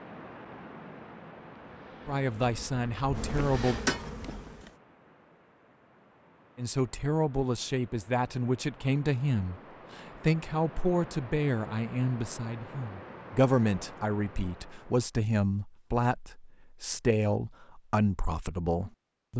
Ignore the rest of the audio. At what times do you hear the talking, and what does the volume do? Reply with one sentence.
You can hear the talking briefly from 2.0 to 3.8 s; and from 6.5 to 19.3 s, at a steady volume.